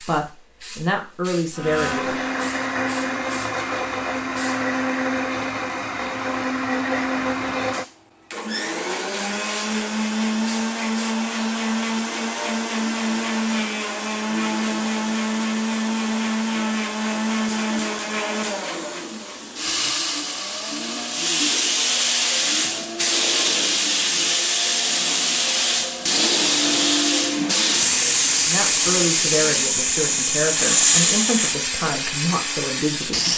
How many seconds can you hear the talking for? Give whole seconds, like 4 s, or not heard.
7 s.